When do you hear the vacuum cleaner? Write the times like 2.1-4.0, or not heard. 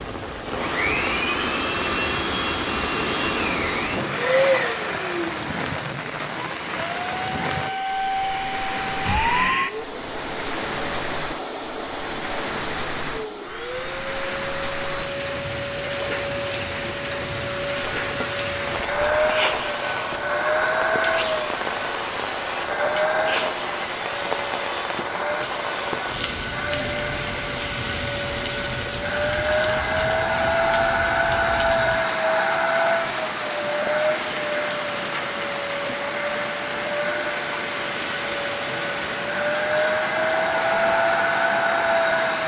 0.0-42.4.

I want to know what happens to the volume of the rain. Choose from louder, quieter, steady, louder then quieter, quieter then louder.
steady.